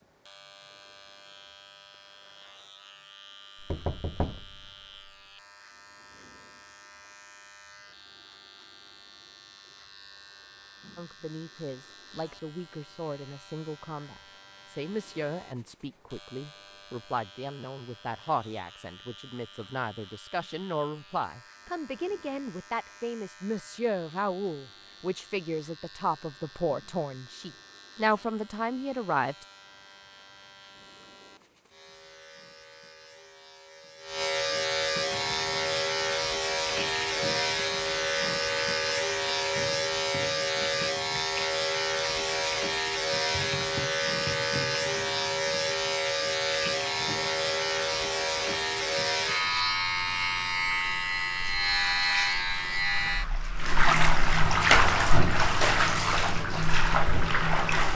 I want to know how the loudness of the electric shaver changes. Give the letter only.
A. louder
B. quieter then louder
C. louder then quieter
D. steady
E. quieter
A.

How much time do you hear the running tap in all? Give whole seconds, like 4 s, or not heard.
23 s.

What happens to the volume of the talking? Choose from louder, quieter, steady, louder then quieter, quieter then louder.
louder.